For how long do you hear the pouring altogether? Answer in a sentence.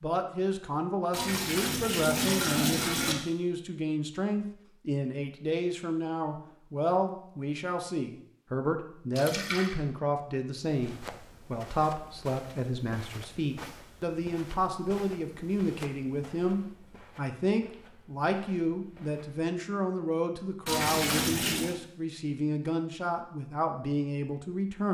You can hear the pouring for 4 seconds altogether.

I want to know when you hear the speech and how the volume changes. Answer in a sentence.
The speech can be heard from 0.0 to 24.8 s, at a steady volume.